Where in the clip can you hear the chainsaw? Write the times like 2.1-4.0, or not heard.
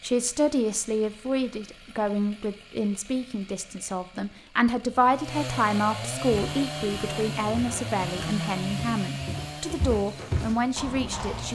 0.0-11.5.